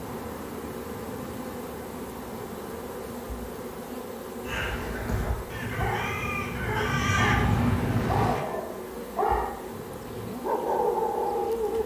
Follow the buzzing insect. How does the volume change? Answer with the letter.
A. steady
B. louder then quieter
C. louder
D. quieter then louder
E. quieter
A.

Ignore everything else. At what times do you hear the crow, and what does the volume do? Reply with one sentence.
You can hear the crow from 4.4 to 8.4 s, getting louder.